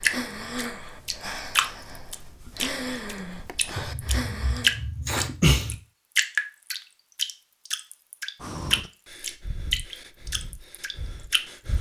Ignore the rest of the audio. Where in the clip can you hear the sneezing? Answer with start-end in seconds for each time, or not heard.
3.8-5.8.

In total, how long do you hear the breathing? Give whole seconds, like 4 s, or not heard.
8 s.